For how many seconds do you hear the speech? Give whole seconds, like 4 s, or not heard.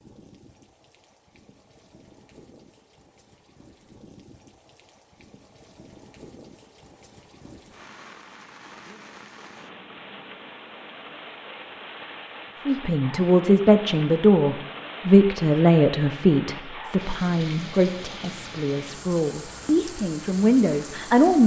9 s.